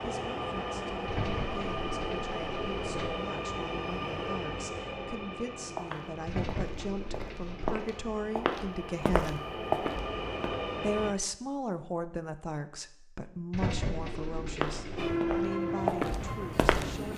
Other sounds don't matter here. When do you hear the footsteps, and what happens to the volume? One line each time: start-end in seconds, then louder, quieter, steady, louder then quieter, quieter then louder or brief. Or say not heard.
5.8-10.6 louder
14.6-17.1 brief.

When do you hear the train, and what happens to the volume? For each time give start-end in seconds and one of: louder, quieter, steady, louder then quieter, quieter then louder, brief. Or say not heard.
0.0-11.2 quieter then louder
14.9-17.1 brief.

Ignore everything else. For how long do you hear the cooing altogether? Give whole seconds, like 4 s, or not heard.
5 s.